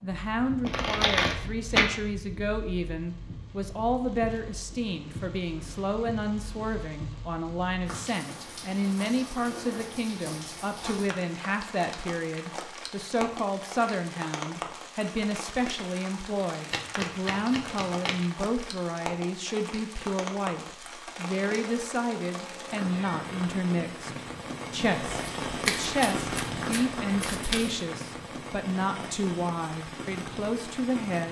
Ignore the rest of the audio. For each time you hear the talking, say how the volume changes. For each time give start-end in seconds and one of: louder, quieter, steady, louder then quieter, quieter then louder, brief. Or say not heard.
0.0-31.2 steady.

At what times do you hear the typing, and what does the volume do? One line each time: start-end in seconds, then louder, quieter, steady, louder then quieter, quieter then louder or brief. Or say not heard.
not heard.